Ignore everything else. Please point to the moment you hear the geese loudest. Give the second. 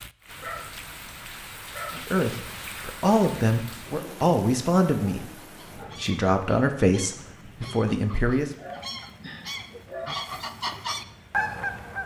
12 s.